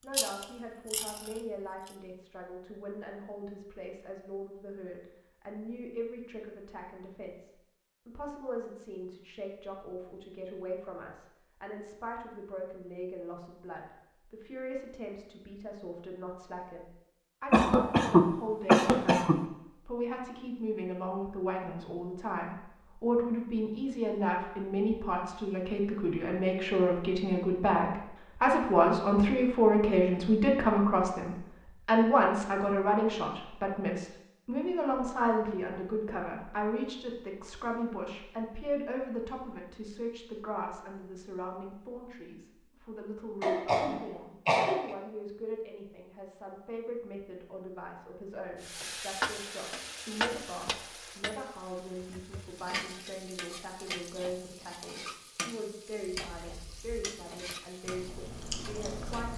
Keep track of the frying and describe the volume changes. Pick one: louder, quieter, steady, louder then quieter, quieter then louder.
quieter.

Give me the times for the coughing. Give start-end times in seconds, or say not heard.
17.5-19.4, 43.4-45.0.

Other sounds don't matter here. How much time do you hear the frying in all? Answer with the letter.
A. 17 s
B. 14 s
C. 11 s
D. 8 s
C.